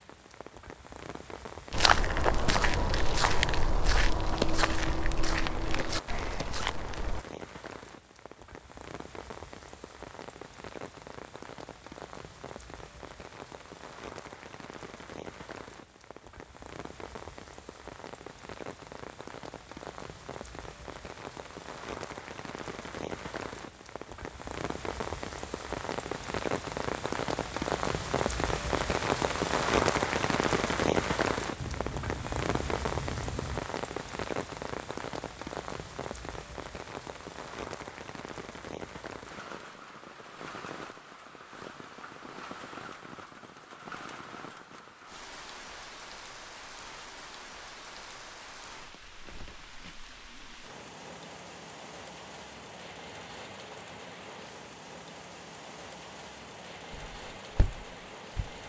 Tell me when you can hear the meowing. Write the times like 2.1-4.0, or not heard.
31.6-33.6.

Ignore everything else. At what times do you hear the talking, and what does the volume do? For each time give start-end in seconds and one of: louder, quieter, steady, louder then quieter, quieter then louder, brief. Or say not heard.
not heard.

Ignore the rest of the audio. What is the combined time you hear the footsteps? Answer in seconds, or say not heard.
7 s.